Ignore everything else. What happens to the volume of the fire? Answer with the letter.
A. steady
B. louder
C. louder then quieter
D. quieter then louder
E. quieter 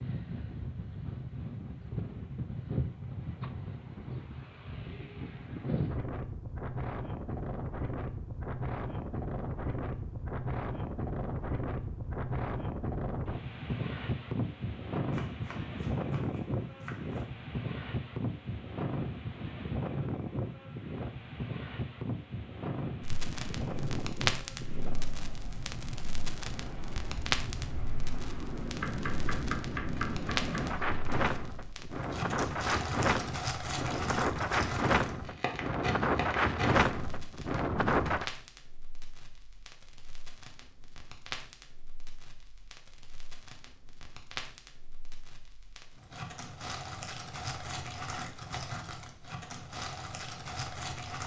D.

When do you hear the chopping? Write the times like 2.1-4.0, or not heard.
15.1-17.2, 28.8-30.9.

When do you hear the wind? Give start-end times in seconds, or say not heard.
0.0-38.2.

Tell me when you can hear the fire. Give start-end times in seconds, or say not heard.
23.0-51.2.